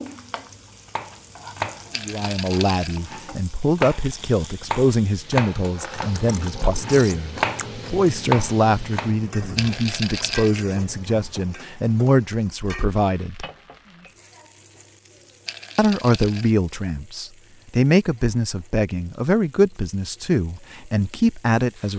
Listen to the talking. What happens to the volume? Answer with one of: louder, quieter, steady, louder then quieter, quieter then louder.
steady.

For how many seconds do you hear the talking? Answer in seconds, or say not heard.
18 s.